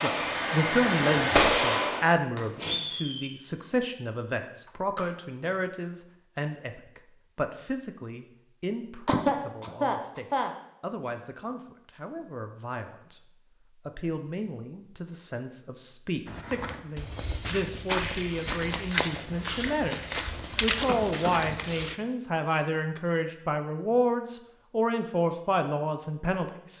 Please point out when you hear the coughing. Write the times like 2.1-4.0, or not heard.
4.7-5.2, 9.1-10.5, 20.9-21.6.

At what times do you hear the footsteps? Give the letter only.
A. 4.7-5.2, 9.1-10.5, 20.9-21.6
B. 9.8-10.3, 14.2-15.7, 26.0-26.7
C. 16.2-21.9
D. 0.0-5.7
C.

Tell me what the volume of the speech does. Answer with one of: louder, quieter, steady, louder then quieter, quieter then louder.
quieter then louder.